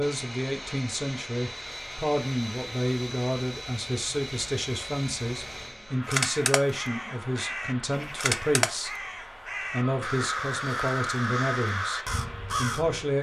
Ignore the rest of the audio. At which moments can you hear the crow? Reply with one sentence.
The crow can be heard from 6.0 to 13.1 s.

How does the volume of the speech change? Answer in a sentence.
The loudness of the speech stays about the same.